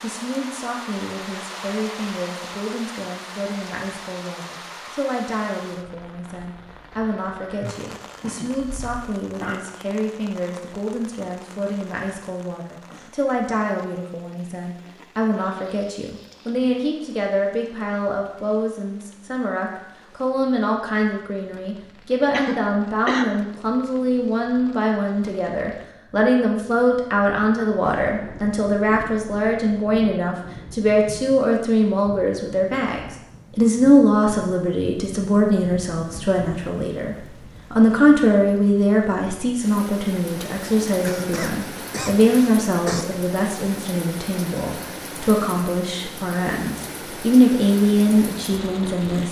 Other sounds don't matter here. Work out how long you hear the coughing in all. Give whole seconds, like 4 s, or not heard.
5 s.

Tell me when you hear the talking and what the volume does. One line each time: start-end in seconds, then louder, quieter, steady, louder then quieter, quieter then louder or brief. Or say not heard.
0.0-49.2 louder.